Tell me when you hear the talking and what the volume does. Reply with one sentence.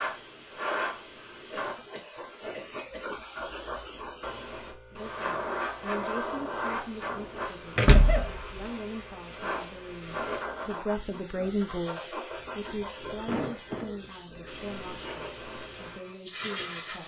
The talking can be heard from 5.0 to 17.0 s, getting louder then quieter.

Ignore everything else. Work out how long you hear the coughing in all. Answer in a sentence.
You can hear the coughing for 3 seconds altogether.